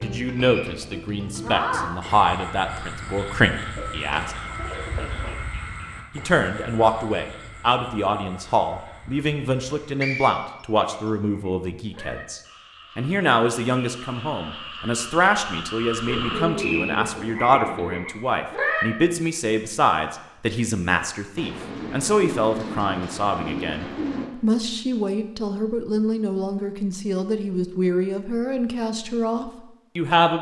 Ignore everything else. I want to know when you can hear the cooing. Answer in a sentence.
The cooing can be heard from 3.8 to 5.3 s, from 16.1 to 18.1 s and from 21.4 to 24.3 s.